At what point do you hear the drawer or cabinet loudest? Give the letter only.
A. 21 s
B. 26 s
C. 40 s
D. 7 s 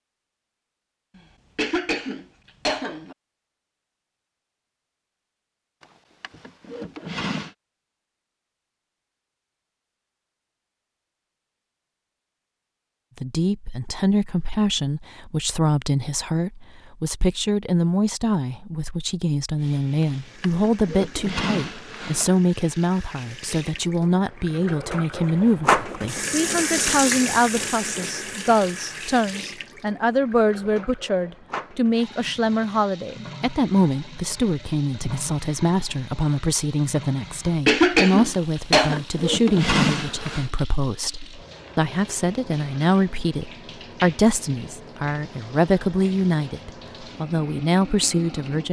C.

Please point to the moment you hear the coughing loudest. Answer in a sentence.
The loudest moment of the coughing is at 38 seconds.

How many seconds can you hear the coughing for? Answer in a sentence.
The coughing can be heard for 3 seconds in total.